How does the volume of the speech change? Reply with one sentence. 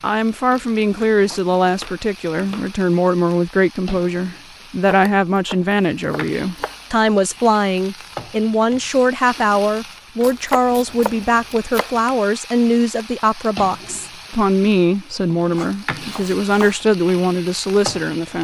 The volume of the speech stays about the same.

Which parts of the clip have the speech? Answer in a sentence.
The speech can be heard from 0.0 to 18.3 s.